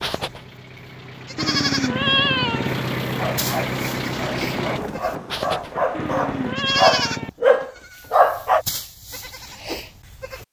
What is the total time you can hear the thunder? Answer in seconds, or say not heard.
2 s.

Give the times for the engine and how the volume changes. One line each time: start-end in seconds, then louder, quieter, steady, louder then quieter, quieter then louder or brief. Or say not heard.
0.1-4.8 louder.